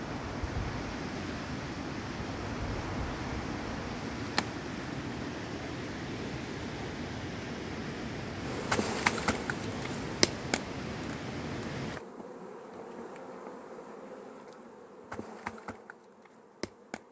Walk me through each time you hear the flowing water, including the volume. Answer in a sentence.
You can hear the flowing water from 0.0 to 12.0 s, at a steady volume.